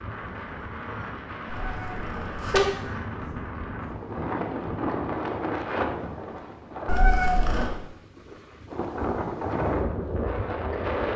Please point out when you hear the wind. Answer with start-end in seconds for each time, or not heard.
0.0-11.1.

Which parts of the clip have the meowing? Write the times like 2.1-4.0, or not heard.
1.4-2.6, 6.8-7.7.